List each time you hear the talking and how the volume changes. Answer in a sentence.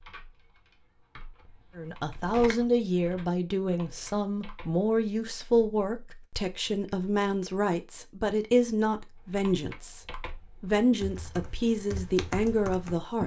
The talking can be heard from 1.8 to 13.2 s, at a steady volume.